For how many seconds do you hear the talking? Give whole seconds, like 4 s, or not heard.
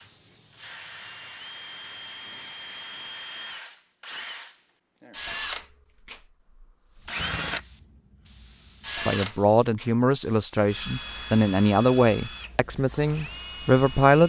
5 s.